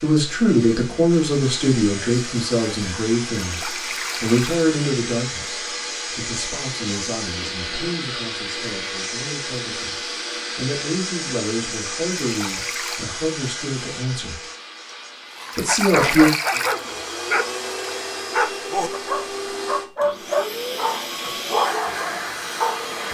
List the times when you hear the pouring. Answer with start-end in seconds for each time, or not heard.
3.5-4.7, 12.2-13.1, 15.5-17.0.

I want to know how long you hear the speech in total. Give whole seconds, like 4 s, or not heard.
15 s.